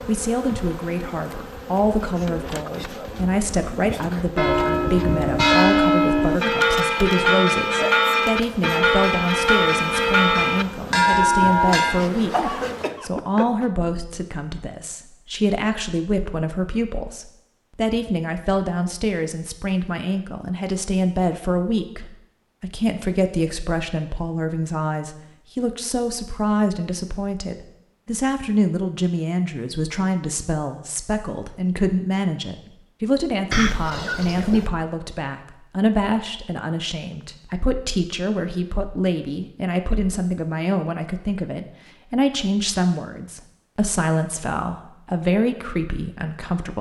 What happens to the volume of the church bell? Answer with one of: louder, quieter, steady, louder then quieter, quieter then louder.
steady.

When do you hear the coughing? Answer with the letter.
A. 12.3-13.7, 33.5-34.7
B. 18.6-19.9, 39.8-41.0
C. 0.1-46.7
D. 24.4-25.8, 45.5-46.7
A.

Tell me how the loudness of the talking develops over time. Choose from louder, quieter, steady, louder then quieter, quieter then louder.
steady.